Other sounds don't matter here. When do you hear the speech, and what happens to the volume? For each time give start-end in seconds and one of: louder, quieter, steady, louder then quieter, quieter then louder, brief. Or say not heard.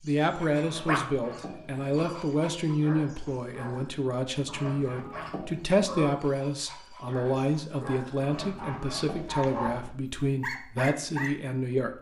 0.0-11.9 steady.